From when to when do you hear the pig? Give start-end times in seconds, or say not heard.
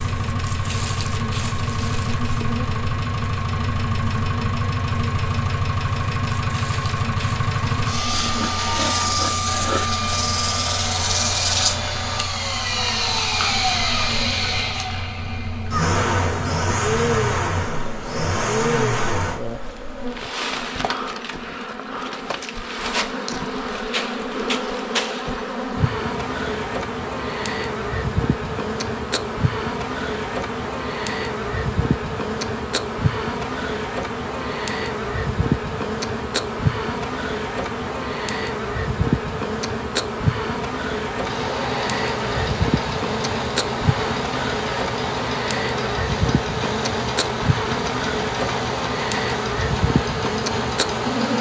8.1-9.9.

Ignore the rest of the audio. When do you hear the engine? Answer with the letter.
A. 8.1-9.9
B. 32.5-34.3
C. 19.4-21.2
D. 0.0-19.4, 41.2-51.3
D.